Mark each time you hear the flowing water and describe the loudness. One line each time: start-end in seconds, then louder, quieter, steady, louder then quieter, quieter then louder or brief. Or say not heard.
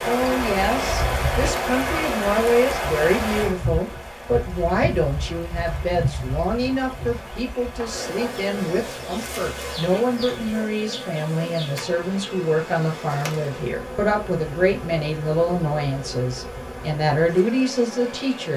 0.0-10.3 quieter.